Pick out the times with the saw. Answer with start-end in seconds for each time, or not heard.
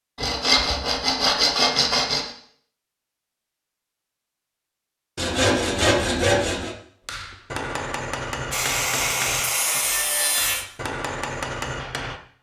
0.1-2.2, 5.2-6.8, 8.5-10.7.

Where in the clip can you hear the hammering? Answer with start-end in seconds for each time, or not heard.
7.0-12.2.